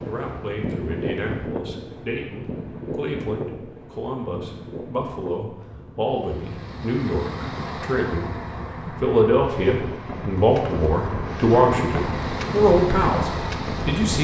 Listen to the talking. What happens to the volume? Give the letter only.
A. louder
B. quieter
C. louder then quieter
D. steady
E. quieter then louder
A.